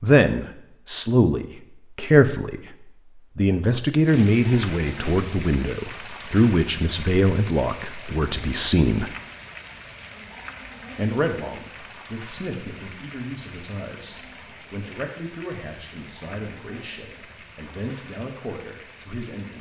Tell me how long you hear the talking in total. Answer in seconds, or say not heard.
17 s.